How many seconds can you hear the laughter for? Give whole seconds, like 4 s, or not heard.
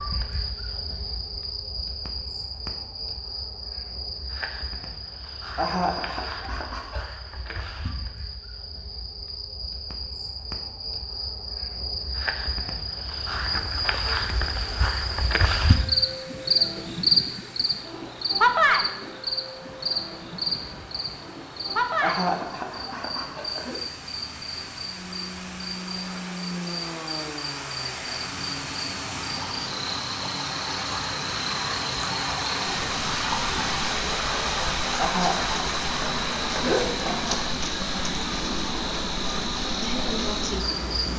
6 s.